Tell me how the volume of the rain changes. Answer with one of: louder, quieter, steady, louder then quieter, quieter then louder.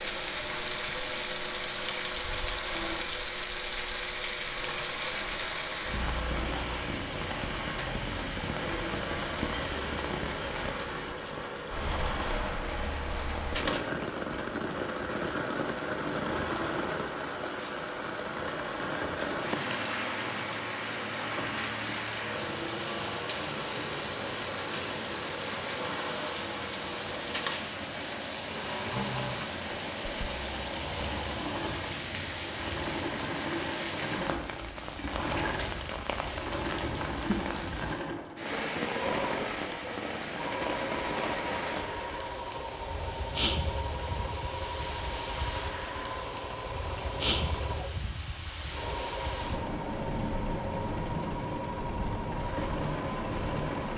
steady.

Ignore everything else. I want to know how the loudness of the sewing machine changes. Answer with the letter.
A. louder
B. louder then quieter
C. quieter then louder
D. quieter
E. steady
E.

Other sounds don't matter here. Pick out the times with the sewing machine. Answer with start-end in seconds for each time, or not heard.
0.0-53.9.